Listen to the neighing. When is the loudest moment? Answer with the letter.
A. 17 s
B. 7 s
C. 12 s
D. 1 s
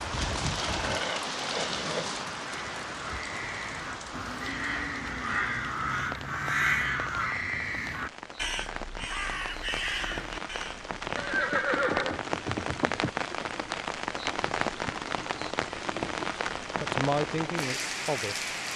C.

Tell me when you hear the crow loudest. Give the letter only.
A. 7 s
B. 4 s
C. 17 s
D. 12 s
A.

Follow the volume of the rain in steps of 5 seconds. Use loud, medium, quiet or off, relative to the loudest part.
loud, medium, loud, loud.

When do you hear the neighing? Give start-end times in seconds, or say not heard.
0.1-2.2, 11.2-13.1.